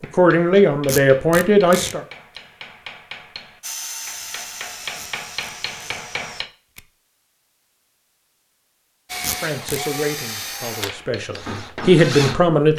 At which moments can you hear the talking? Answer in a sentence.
You can hear the talking from 0.0 to 2.0 s and from 9.4 to 12.7 s.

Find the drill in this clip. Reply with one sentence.
The drill can be heard from 3.6 to 6.5 s and from 9.1 to 12.7 s.